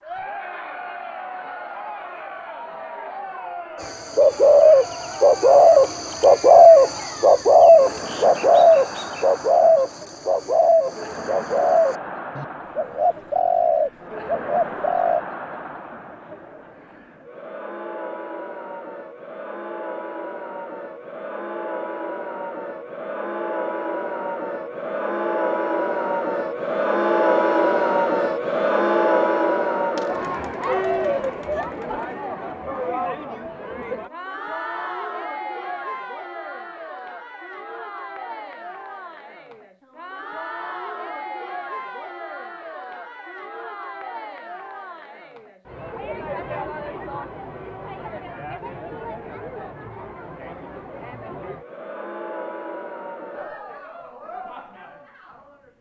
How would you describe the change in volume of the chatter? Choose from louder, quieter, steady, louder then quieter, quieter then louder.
louder then quieter.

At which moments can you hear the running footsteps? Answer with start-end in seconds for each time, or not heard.
not heard.